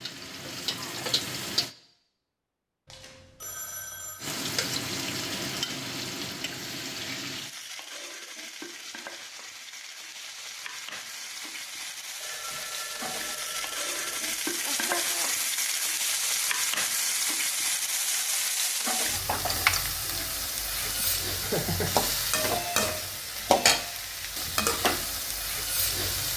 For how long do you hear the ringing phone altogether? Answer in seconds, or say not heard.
5 s.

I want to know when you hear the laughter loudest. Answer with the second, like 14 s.
22 s.